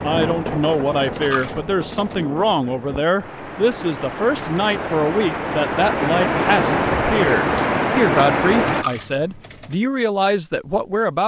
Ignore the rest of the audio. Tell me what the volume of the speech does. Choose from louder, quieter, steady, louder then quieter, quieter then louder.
steady.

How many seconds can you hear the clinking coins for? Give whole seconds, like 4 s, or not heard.
2 s.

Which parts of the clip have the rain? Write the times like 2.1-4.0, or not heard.
0.0-8.8.